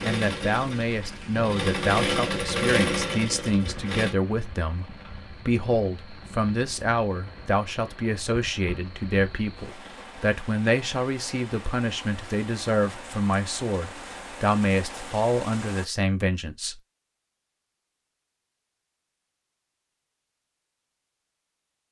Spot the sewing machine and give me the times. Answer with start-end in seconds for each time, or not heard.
0.0-4.2.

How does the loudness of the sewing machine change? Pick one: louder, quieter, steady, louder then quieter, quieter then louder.
louder then quieter.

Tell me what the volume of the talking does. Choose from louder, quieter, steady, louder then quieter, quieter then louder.
steady.